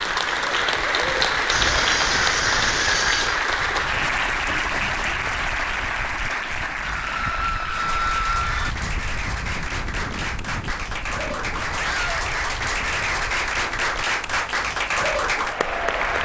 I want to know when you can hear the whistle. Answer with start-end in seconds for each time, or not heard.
not heard.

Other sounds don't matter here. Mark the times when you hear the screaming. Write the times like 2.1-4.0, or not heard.
1.4-3.4, 7.0-8.8, 11.8-12.3.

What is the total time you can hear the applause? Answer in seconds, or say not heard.
16 s.